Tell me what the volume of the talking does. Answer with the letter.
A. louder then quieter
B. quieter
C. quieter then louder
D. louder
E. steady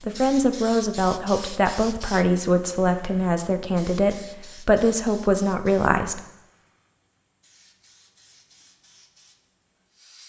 E.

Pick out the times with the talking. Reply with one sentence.
You can hear the talking from 0.0 to 6.2 s.